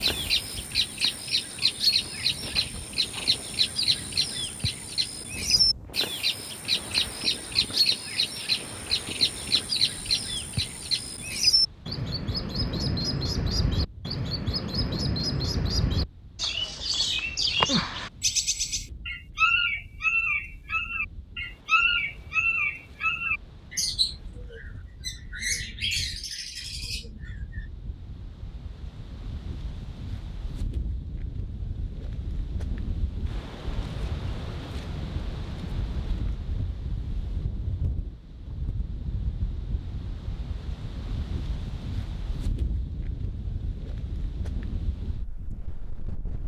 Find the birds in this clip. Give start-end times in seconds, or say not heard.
0.0-27.6.